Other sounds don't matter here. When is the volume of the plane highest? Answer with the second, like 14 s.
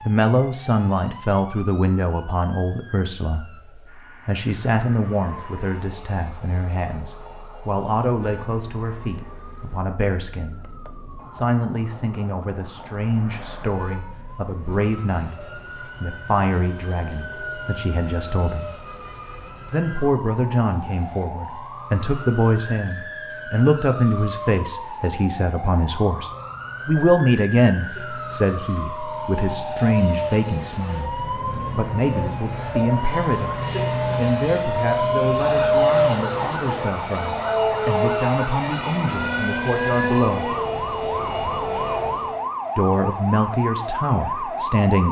36 s.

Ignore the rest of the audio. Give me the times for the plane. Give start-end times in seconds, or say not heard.
4.8-42.4.